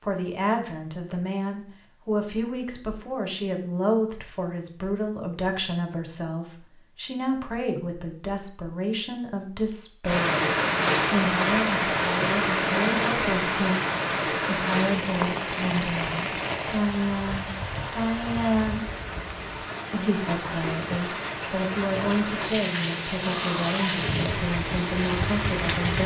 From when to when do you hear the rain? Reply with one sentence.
The rain can be heard from 10.1 to 26.0 s.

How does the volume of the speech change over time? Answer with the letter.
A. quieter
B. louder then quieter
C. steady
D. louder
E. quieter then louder
C.